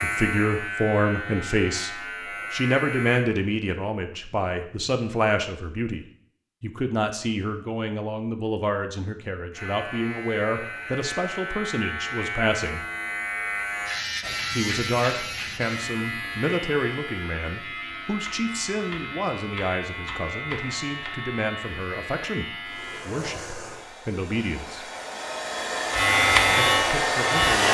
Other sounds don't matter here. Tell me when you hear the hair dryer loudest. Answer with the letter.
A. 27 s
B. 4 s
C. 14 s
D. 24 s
A.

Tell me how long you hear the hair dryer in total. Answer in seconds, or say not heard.
5 s.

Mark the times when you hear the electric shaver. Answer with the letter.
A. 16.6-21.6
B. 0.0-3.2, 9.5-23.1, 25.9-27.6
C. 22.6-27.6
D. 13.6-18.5
B.